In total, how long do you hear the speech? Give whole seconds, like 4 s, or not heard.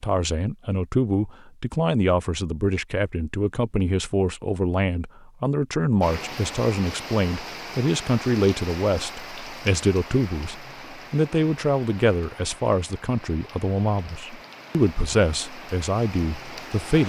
17 s.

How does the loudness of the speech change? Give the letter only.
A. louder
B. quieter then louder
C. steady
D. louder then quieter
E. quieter
C.